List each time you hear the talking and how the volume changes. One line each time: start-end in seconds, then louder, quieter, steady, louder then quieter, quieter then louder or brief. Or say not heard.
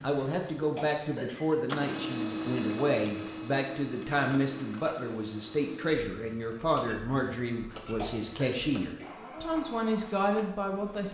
0.0-11.0 steady.